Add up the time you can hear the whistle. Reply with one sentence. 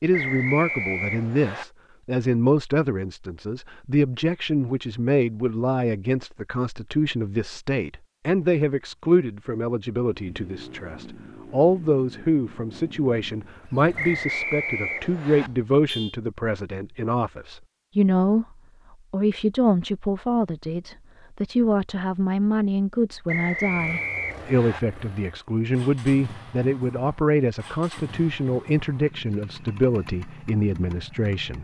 The whistle can be heard for 5 seconds in total.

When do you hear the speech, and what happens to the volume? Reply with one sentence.
The speech can be heard from 0.0 to 18.4 s, at a steady volume; and from 19.1 to 31.5 s, at a steady volume.